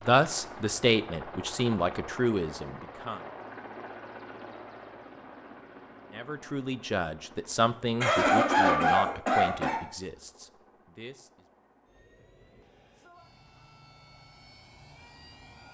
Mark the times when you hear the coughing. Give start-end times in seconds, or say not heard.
8.0-9.8.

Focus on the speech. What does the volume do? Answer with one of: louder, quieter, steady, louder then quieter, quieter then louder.
quieter.